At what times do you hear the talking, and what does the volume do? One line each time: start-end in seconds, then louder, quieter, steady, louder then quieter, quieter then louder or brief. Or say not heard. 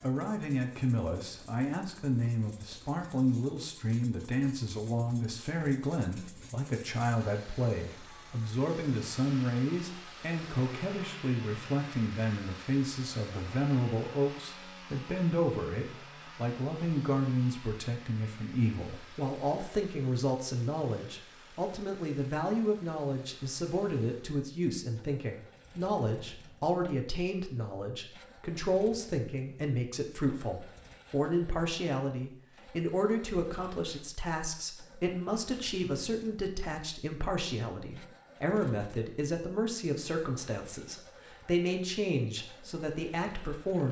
0.0-43.8 steady.